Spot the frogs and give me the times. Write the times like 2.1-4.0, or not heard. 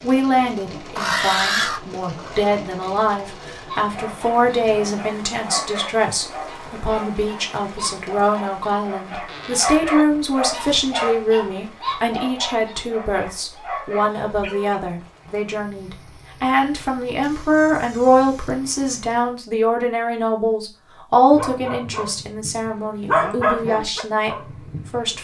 not heard.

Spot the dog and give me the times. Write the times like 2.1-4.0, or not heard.
3.7-14.8, 21.3-25.1.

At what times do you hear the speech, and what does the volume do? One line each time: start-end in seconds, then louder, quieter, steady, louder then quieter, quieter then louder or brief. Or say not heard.
0.0-25.1 steady.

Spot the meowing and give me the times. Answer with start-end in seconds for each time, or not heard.
not heard.